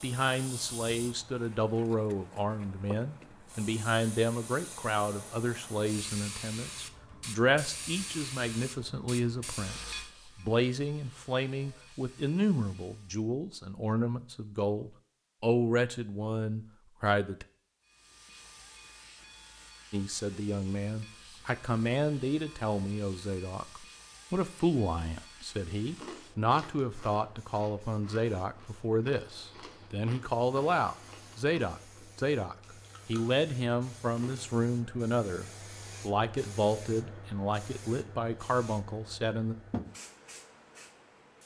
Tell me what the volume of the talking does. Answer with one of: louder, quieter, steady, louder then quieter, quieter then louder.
steady.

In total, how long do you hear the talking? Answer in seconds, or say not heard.
37 s.